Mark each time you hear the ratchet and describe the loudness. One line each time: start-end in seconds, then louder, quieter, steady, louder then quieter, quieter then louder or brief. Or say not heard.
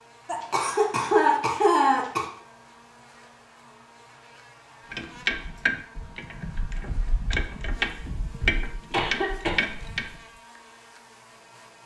4.9-10.2 quieter then louder.